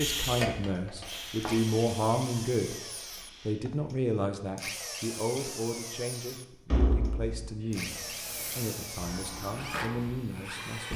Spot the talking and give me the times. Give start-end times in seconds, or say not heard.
0.0-2.8, 3.5-10.9.